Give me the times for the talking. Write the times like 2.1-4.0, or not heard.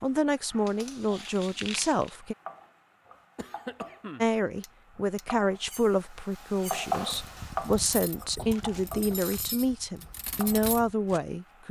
0.0-2.4, 4.2-11.6.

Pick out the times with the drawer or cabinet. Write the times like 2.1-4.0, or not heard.
not heard.